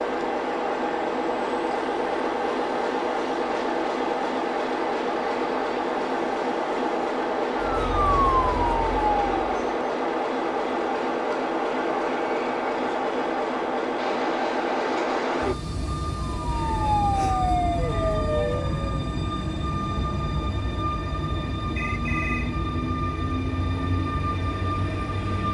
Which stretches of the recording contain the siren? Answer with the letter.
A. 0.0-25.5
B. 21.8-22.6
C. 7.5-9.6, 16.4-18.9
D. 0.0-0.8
C.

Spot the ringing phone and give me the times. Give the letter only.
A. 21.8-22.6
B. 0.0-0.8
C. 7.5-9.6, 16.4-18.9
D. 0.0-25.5
A.